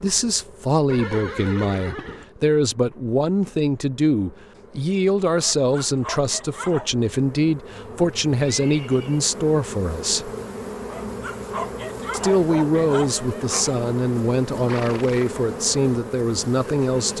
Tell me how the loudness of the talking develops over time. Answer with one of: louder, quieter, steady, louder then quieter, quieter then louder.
steady.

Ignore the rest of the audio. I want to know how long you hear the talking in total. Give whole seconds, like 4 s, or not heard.
15 s.